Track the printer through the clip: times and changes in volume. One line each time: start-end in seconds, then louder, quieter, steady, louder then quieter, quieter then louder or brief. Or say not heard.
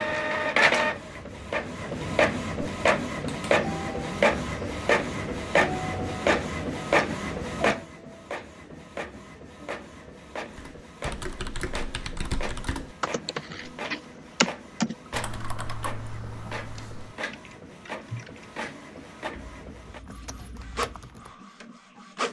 0.0-22.2 quieter.